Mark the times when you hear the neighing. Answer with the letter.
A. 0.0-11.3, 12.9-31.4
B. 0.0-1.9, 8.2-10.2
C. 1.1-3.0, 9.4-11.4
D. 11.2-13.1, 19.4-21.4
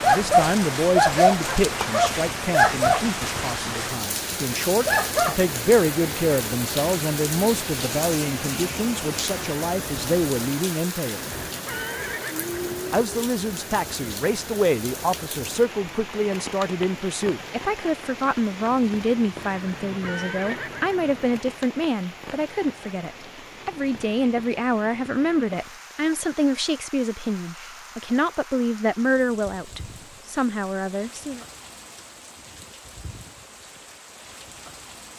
D.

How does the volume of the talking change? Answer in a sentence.
The volume of the talking stays about the same.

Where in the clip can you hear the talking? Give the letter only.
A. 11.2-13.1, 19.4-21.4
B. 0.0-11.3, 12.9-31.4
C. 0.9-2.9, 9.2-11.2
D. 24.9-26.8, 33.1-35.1
B.